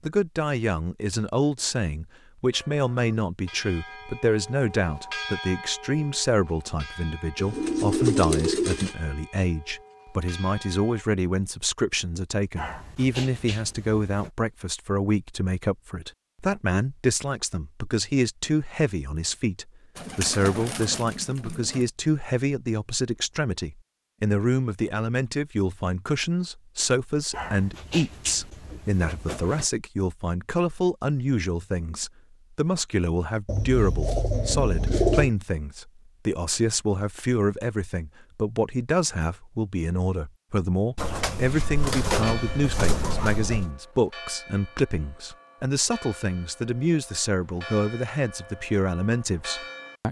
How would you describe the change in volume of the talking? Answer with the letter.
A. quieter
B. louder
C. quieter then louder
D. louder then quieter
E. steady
E.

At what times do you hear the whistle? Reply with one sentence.
The whistle can't be heard in this clip.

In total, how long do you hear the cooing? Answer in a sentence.
You can hear the cooing for 8 seconds altogether.